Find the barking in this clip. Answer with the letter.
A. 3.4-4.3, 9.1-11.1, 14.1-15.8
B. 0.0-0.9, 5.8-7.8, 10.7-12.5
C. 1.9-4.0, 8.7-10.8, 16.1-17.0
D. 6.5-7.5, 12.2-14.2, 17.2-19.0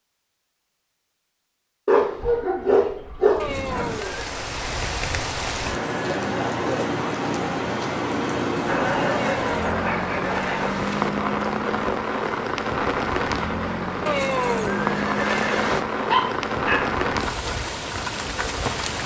C.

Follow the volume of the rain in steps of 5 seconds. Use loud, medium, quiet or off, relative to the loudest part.
medium, loud, loud, loud.